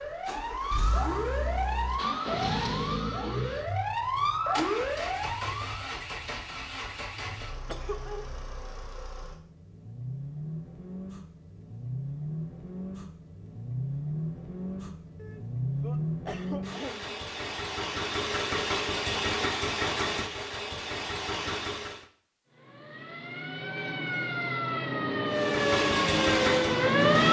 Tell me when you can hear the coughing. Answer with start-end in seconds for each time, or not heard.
7.7-8.3, 15.2-17.2.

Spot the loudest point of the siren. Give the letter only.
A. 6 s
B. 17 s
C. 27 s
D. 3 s
C.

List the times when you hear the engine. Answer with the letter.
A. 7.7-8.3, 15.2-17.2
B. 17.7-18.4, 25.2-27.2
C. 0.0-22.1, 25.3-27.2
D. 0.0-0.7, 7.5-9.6
C.